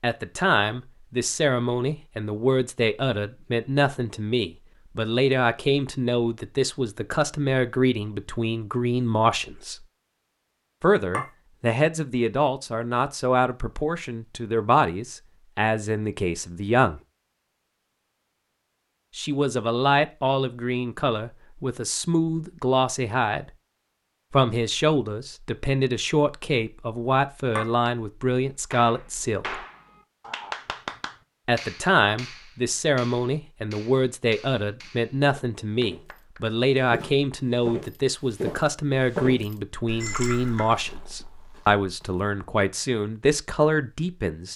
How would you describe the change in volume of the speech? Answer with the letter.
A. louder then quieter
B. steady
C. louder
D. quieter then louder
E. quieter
B.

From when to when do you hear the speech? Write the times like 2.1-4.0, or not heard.
0.0-9.8, 10.8-17.0, 19.1-23.4, 24.3-29.6, 31.4-44.5.